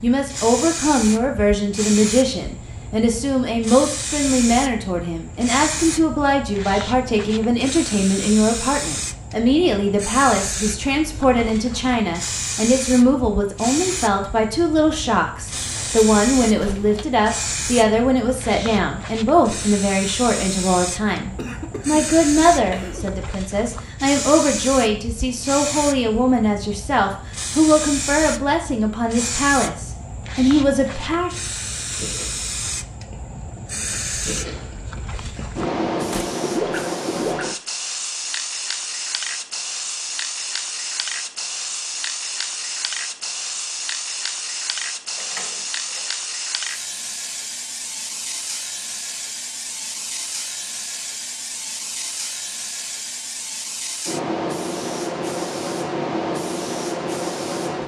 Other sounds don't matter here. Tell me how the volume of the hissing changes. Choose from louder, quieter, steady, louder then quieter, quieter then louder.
steady.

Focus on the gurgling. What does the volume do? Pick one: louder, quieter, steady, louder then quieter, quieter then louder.
louder.